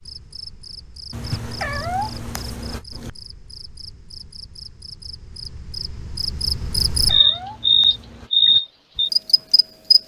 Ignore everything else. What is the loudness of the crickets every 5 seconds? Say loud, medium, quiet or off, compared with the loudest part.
quiet, loud.